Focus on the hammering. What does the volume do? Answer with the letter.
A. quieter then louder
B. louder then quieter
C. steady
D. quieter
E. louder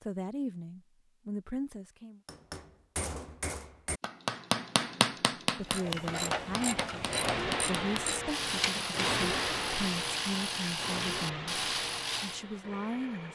B.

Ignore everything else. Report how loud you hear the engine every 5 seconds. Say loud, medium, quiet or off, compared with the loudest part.
off, loud, medium.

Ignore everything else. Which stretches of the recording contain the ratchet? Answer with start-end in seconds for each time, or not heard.
5.7-12.4.